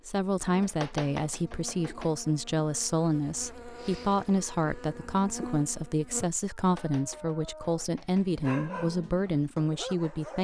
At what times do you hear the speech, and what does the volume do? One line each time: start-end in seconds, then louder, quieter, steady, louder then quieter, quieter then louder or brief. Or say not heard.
0.1-10.3 steady.